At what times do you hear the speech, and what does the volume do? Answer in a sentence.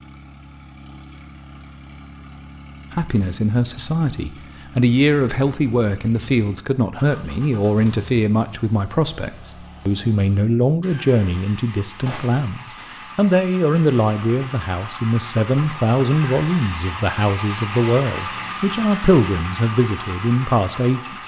The speech can be heard from 2.9 to 21.1 s, at a steady volume.